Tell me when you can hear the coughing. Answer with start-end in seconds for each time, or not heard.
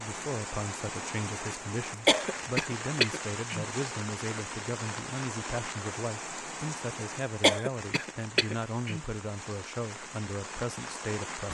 2.0-3.6, 7.4-9.0.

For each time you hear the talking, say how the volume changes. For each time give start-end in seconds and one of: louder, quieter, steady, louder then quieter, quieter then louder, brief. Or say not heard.
0.0-11.4 steady.